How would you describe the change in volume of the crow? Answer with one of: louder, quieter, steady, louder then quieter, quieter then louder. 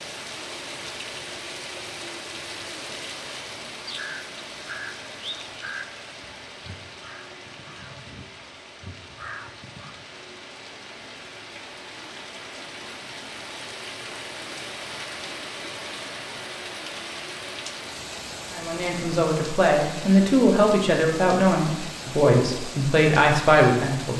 quieter then louder.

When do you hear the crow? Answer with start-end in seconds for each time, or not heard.
3.9-10.1.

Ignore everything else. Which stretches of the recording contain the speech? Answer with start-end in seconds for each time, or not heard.
18.5-24.1.